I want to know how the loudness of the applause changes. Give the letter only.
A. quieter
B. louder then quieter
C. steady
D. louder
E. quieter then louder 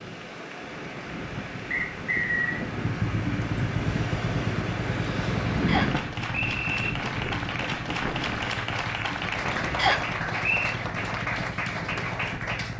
D.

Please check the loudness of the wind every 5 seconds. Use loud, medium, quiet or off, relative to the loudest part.
loud, loud, medium.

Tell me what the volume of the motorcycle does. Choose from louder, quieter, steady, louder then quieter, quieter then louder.
quieter.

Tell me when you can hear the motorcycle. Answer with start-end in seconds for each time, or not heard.
2.7-12.7.